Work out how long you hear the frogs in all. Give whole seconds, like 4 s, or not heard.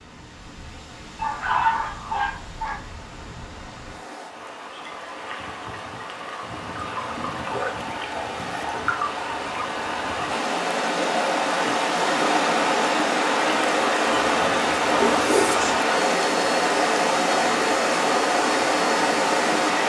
not heard.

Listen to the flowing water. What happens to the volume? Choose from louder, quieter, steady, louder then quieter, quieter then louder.
louder.